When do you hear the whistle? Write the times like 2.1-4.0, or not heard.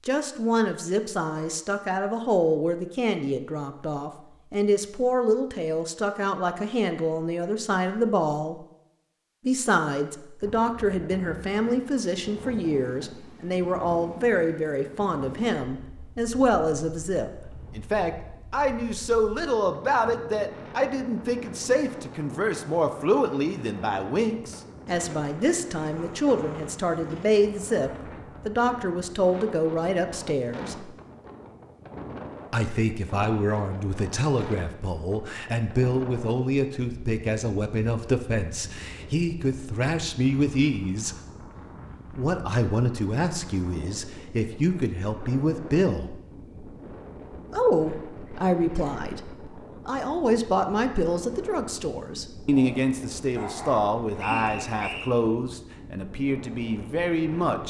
54.1-55.1.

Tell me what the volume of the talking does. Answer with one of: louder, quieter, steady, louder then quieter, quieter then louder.
steady.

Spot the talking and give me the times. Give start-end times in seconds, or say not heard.
0.1-8.6, 9.4-30.9, 32.5-41.1, 42.1-46.1, 47.5-57.6.